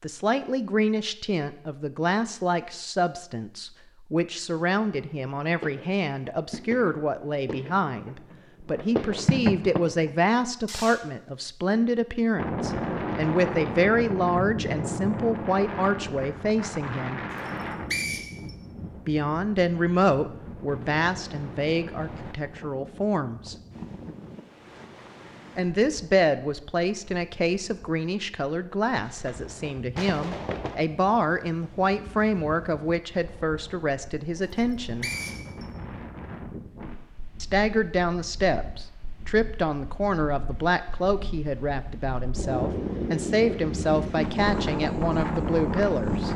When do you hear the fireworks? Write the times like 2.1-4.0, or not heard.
4.5-11.1, 29.0-30.8.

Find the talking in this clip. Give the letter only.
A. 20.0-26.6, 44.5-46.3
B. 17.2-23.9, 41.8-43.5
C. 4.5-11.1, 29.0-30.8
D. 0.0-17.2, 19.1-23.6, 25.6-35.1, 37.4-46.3
D.